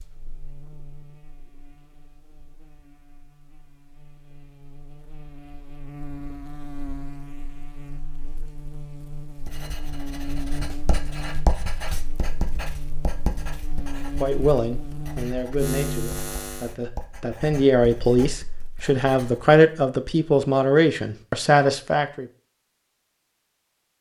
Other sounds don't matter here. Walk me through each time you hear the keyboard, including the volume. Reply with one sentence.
You can't hear the keyboard here.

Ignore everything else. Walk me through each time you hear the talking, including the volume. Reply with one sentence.
The talking can be heard from 14.2 to 22.2 s, getting louder.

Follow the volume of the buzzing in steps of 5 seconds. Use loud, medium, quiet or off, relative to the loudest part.
quiet, medium, medium, loud, off.